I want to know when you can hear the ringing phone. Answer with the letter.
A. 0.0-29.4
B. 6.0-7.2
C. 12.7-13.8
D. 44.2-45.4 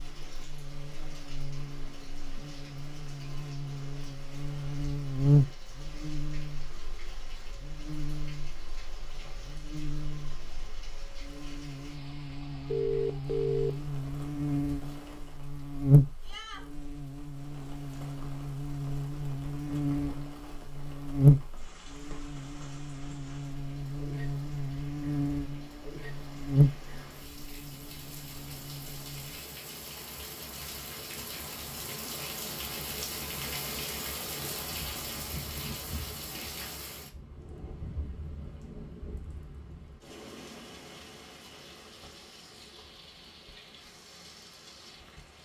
C.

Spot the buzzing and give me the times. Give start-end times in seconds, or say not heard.
0.0-29.4.